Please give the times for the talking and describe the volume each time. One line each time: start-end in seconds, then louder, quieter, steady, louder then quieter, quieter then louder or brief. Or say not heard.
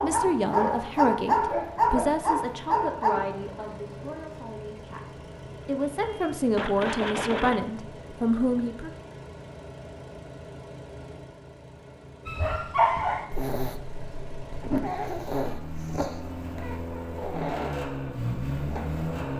0.0-8.9 quieter then louder.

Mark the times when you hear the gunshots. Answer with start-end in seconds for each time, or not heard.
6.0-7.6.